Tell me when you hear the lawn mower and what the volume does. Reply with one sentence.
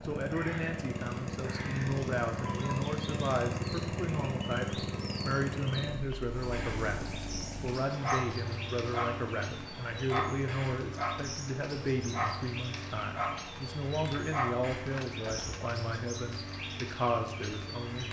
You can hear the lawn mower from 0.0 to 18.0 s, getting quieter.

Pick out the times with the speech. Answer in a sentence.
You can hear the speech from 0.0 to 18.0 s.